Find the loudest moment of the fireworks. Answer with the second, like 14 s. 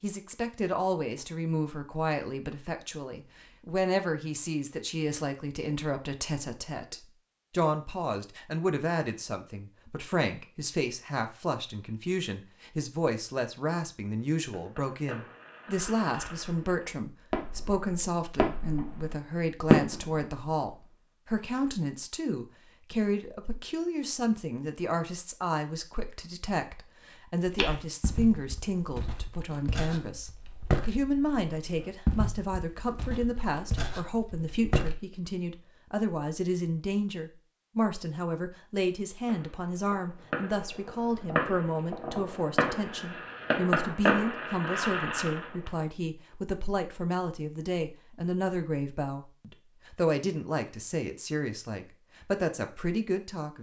20 s.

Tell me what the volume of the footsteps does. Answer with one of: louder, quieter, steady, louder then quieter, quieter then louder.
louder then quieter.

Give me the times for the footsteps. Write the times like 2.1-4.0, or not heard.
27.4-35.0.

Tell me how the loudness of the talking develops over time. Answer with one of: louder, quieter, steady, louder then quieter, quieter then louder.
steady.